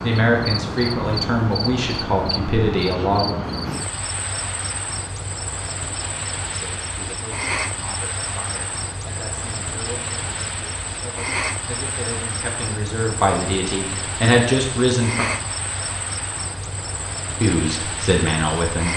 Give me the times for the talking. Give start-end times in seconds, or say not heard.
0.0-3.4, 6.5-15.2, 17.4-18.9.